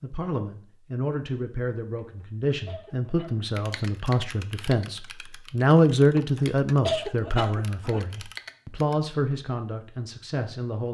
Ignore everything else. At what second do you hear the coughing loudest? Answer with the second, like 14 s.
7 s.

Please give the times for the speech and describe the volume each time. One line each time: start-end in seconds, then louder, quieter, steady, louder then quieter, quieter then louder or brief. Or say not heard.
0.0-10.8 louder then quieter.